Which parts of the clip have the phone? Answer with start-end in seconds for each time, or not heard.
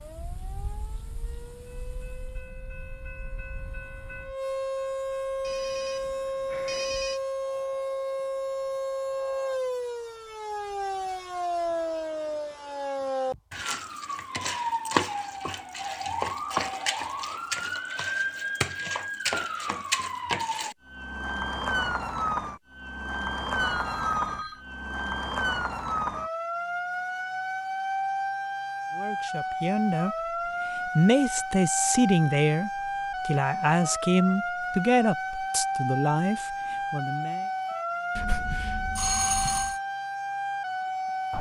5.4-7.2, 23.6-24.6, 38.1-39.8.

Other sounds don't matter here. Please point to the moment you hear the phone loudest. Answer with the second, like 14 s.
39 s.